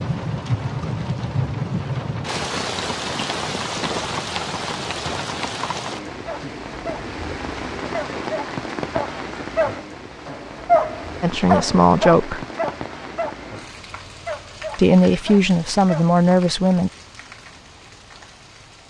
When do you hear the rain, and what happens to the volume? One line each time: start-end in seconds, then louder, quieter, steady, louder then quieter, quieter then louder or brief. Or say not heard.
0.0-18.8 quieter.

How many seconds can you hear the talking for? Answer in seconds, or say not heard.
3 s.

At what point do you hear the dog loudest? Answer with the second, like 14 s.
11 s.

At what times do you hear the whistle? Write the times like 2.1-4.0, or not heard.
not heard.